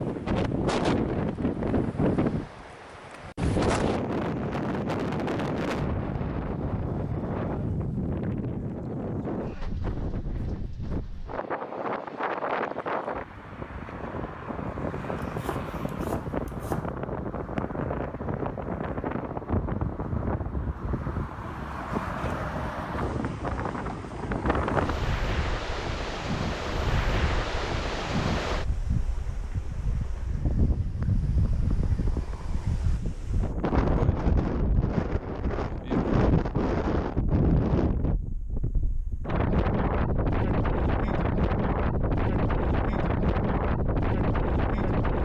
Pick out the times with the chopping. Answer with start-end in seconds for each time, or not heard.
15.2-16.9.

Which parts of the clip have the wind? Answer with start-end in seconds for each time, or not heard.
0.0-45.2.